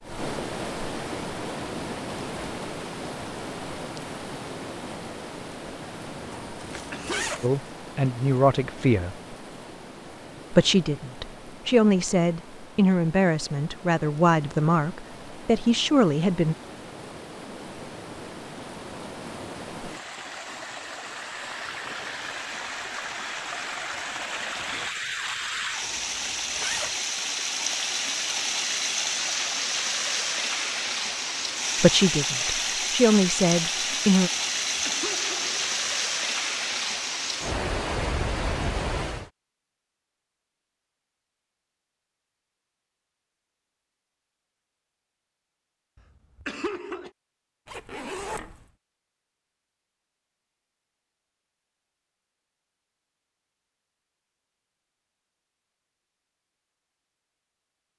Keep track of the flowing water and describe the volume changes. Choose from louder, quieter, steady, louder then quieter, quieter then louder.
quieter then louder.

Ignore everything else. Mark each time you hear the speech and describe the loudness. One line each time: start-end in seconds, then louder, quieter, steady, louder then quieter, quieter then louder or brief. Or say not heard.
7.4-9.2 brief
10.5-16.6 steady
31.8-34.3 brief.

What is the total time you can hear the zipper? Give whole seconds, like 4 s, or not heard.
3 s.